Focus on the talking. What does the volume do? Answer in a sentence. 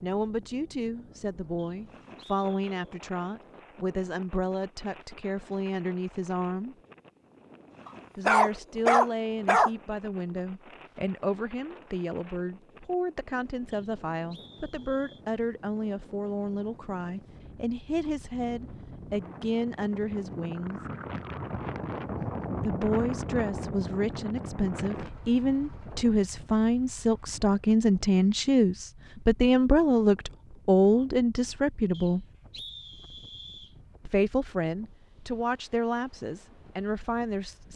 The loudness of the talking goes up.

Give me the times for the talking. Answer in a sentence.
You can hear the talking from 0.0 to 6.8 s, from 8.2 to 20.8 s, from 22.6 to 32.2 s and from 34.0 to 37.7 s.